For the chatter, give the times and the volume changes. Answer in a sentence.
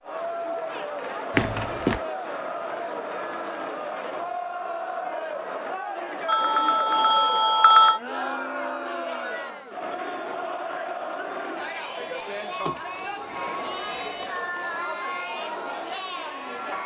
You can hear the chatter from 0.0 to 16.8 s, at a steady volume.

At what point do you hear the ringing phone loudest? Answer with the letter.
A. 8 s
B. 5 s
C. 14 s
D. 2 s
A.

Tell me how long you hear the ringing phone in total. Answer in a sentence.
You can hear the ringing phone for 4 seconds altogether.